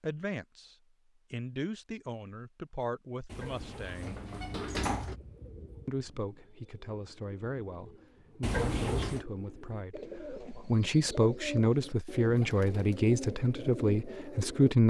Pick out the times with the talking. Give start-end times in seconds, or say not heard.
0.0-4.2, 5.8-14.8.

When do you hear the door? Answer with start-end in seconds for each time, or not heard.
3.3-5.2, 8.4-9.2.